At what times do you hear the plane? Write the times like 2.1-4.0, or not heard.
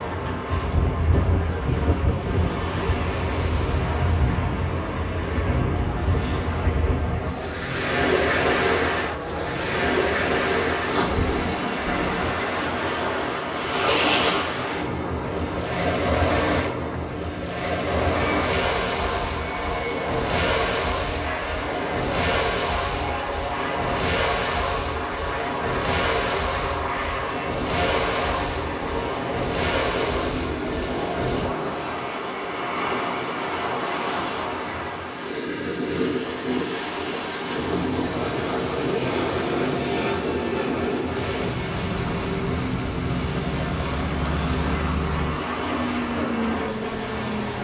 0.0-47.5.